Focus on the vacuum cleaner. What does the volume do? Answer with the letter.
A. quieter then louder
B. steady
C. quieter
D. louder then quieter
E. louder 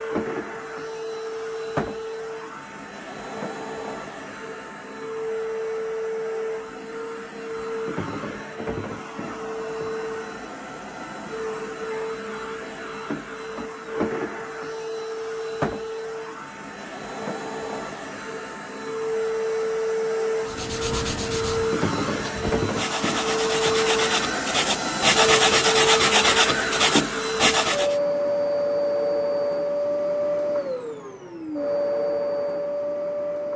E.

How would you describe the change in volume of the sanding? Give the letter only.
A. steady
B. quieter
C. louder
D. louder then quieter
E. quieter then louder
C.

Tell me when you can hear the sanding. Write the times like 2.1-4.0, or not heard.
20.4-27.9.